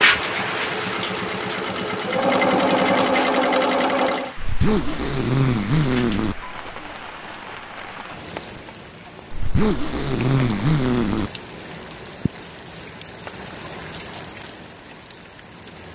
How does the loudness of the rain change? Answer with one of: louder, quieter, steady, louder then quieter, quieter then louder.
quieter.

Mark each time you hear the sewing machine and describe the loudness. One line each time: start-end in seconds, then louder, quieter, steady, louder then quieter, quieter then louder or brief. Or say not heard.
0.0-4.3 louder.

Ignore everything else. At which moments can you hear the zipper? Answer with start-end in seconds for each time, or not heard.
4.3-6.3, 9.3-11.3.